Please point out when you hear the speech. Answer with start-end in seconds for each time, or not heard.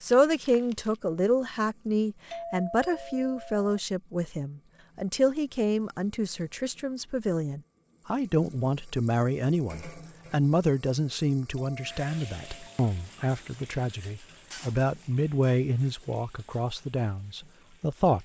0.0-18.2.